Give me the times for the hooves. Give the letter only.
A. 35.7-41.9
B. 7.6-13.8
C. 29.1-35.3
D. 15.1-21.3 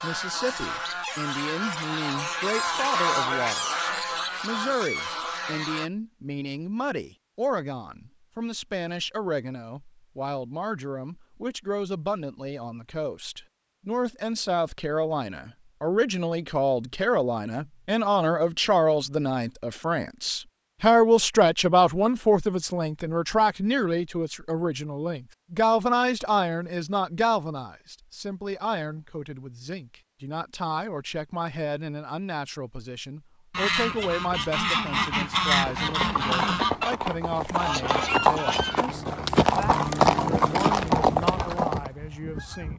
A.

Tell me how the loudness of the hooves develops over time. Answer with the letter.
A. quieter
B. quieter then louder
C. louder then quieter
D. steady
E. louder
E.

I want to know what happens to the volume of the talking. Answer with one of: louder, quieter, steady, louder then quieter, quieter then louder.
louder then quieter.